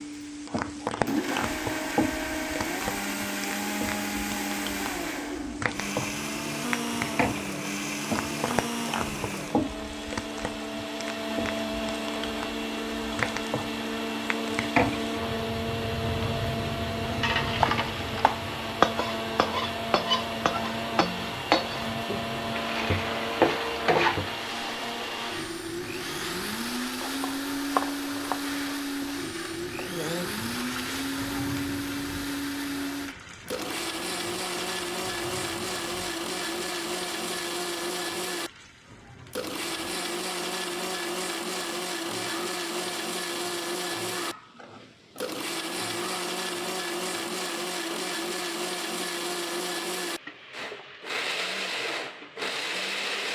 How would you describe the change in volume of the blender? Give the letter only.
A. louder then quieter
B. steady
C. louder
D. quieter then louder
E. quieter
B.